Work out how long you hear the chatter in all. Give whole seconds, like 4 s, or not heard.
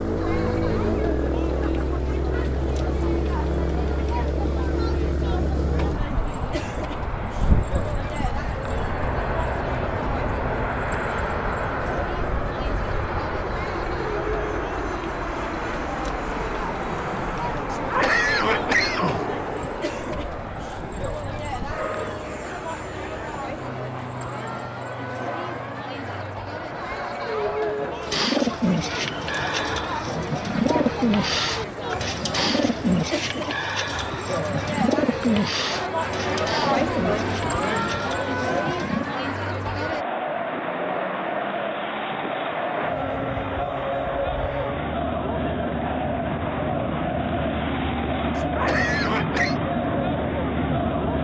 51 s.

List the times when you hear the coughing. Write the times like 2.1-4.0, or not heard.
17.7-19.2, 48.4-49.5.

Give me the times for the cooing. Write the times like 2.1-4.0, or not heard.
28.0-39.0.